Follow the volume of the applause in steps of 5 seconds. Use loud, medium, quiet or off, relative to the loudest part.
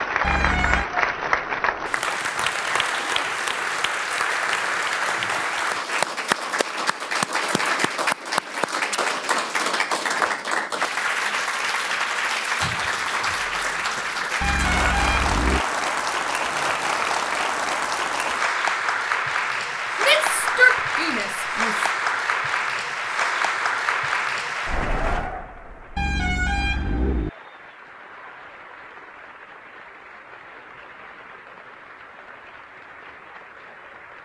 loud, loud, loud, loud, loud, quiet, quiet.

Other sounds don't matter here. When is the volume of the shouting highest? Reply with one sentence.
The volume of the shouting peaks at 21 seconds.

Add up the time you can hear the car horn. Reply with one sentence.
The car horn can be heard for 3 seconds in total.